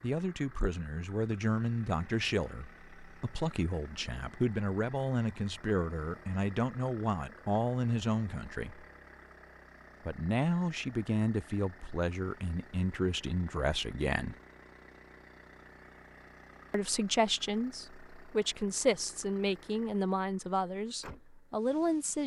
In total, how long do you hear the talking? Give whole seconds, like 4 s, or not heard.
19 s.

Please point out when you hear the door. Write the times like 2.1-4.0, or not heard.
not heard.